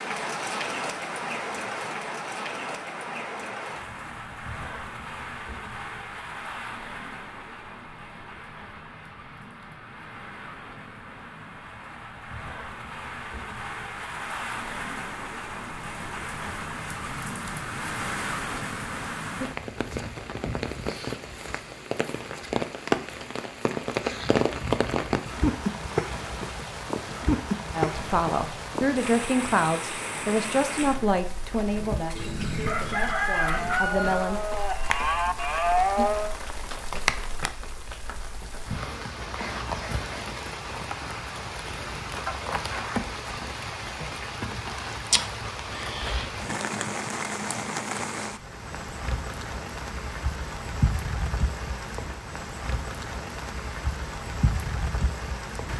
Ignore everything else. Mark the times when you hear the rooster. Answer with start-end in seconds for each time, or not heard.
32.1-34.1.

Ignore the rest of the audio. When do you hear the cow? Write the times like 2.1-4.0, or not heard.
31.6-36.4.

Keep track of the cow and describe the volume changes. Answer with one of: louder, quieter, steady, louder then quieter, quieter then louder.
louder.